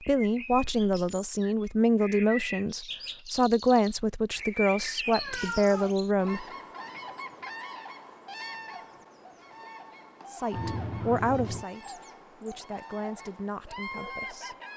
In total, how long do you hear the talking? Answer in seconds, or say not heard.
11 s.